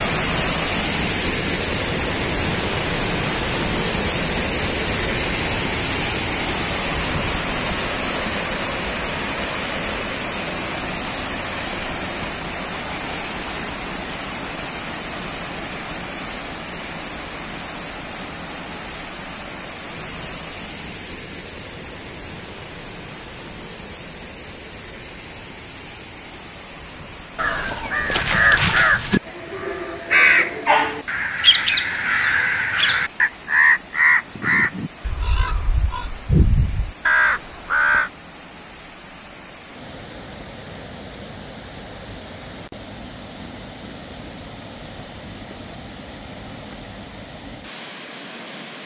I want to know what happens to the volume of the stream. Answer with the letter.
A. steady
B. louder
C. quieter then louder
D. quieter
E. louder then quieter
D.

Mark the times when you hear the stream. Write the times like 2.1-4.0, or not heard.
0.0-48.8.